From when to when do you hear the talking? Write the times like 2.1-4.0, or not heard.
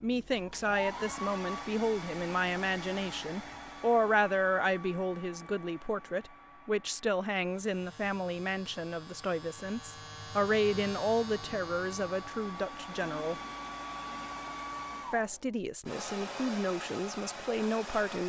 0.0-13.4, 15.1-18.2.